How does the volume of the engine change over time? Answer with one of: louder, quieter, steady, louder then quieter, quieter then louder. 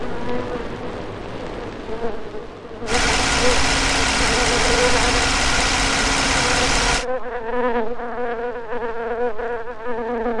steady.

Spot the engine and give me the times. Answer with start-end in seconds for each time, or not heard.
2.9-7.0.